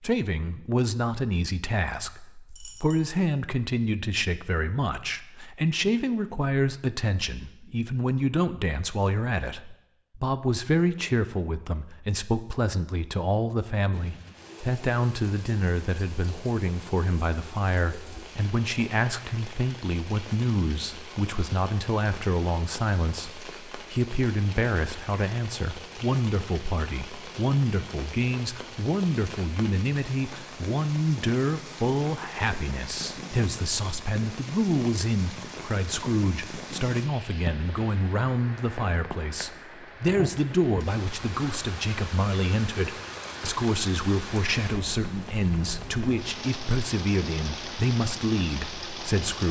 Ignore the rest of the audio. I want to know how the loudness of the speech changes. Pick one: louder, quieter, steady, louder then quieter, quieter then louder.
steady.